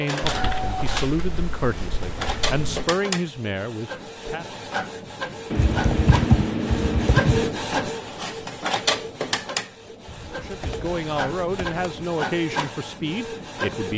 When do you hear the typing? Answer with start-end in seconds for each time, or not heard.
0.2-2.9, 5.5-7.5, 10.1-12.1.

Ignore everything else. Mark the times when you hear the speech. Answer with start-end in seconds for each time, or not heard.
0.0-4.5, 10.2-13.9.